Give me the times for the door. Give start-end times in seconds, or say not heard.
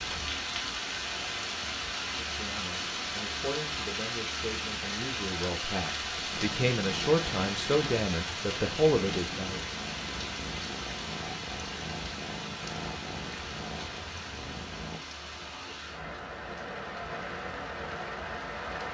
not heard.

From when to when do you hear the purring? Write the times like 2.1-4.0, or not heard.
6.3-15.0.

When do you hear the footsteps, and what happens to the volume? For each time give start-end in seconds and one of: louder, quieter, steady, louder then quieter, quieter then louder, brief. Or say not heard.
not heard.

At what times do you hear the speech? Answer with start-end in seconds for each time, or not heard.
2.1-9.7.